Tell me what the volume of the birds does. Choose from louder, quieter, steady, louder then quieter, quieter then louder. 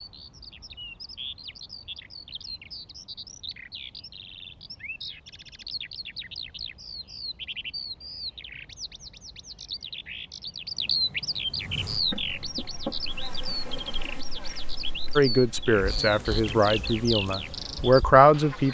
louder.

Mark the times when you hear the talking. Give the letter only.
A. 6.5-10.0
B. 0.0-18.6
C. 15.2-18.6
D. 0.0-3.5
C.